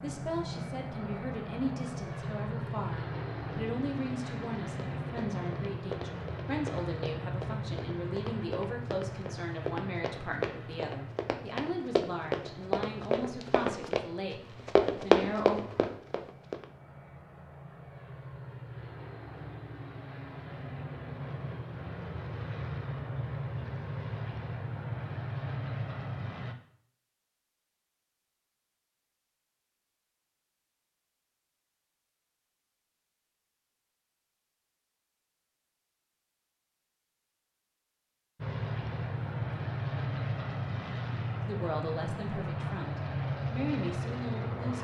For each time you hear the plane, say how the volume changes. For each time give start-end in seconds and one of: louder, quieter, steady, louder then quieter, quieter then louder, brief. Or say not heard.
0.0-26.6 quieter then louder
38.4-44.8 steady.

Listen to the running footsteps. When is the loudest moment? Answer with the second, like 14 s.
15 s.